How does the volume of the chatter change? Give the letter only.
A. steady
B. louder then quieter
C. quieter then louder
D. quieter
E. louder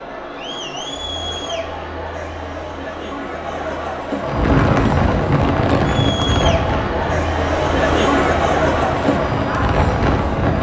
E.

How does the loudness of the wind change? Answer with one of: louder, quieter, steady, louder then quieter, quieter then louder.
quieter then louder.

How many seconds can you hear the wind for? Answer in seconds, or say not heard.
6 s.